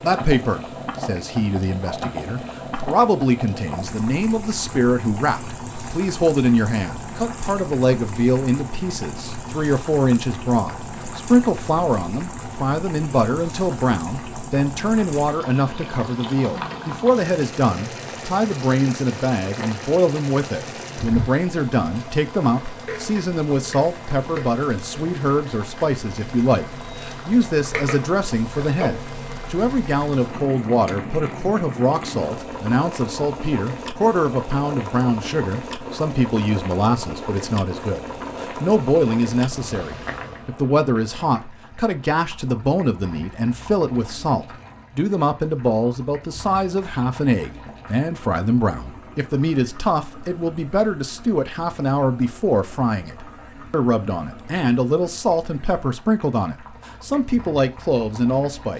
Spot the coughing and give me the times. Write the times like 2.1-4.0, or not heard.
not heard.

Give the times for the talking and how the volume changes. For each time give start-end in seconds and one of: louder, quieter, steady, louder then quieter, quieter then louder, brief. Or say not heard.
0.0-58.7 steady.